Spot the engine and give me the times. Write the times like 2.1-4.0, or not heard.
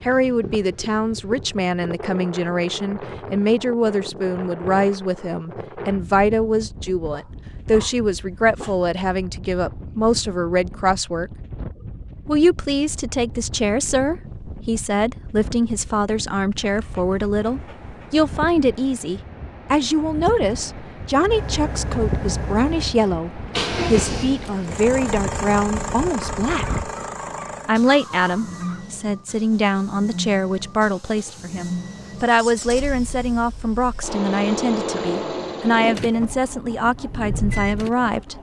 21.3-38.3.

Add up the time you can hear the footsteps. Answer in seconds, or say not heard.
not heard.